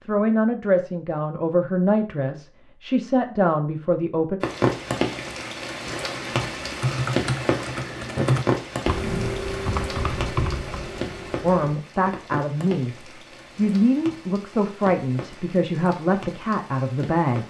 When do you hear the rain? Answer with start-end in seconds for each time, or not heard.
4.4-17.4.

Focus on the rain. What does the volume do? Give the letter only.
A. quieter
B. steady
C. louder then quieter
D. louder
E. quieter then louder
A.